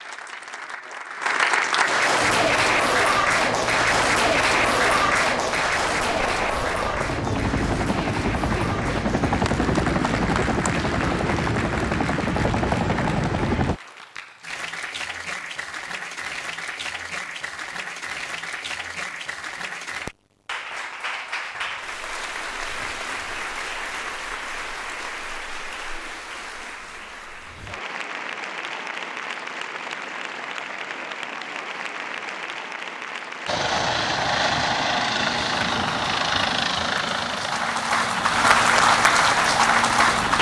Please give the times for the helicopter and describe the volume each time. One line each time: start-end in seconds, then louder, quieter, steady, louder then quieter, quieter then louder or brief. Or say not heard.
2.2-13.8 louder
33.5-40.3 quieter.